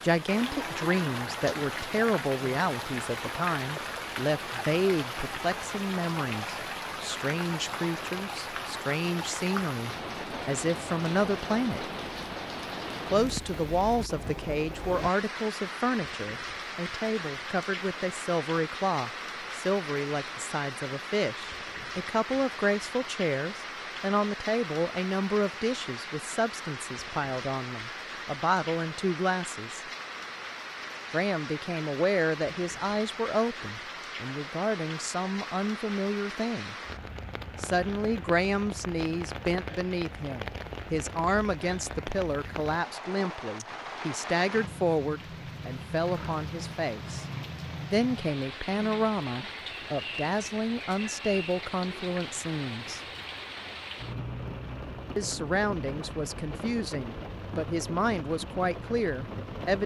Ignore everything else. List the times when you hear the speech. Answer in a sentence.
The speech can be heard from 0.0 to 11.8 s, from 13.1 to 29.8 s, from 31.1 to 36.8 s, from 37.6 to 47.2 s, from 47.9 to 53.0 s and from 55.1 to 59.8 s.